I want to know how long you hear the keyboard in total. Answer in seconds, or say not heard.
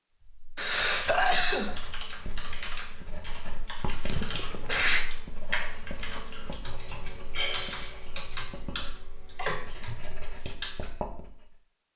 9 s.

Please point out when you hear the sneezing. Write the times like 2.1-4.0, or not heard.
0.6-1.8, 4.0-5.0, 9.3-9.8.